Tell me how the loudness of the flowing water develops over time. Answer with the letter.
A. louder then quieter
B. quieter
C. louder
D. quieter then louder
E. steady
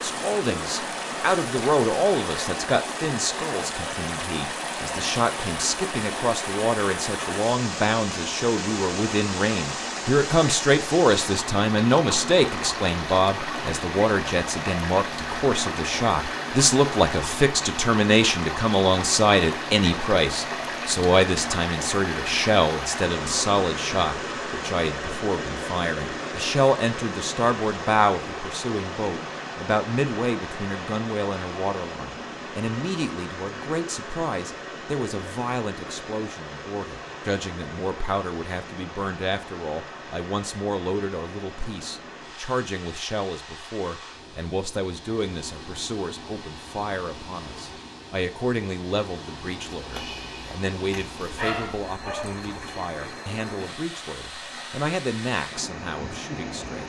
B.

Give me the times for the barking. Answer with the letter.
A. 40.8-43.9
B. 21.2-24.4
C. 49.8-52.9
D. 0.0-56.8
C.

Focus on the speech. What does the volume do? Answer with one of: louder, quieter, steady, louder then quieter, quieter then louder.
quieter.